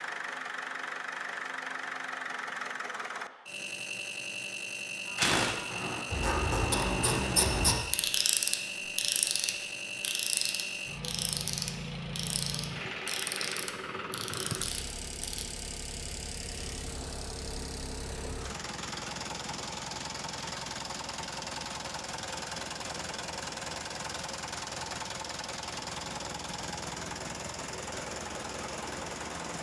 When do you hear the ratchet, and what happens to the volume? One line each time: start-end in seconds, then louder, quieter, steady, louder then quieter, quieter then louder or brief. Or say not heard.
5.0-15.4 quieter.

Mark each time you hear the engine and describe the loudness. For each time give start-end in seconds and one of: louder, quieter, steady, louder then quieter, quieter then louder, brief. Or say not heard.
0.0-29.5 steady.